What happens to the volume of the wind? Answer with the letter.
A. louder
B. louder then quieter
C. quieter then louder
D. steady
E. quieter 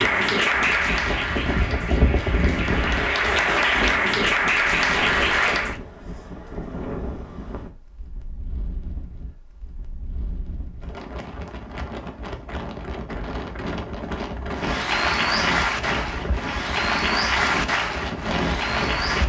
C.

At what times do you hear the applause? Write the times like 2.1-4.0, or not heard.
0.0-5.8, 14.5-19.2.